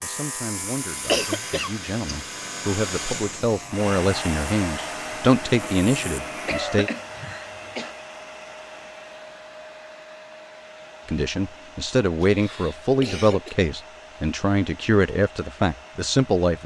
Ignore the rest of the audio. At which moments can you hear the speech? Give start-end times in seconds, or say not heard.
0.0-6.9, 11.1-16.6.